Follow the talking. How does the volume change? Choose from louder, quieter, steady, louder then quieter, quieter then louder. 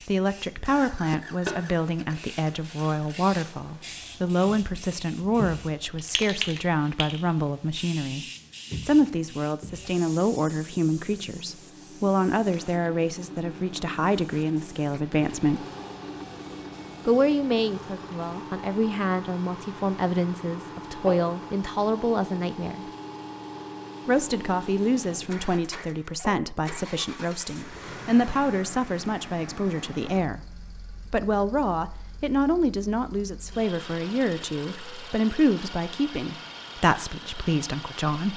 steady.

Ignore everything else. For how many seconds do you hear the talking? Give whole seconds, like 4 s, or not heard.
35 s.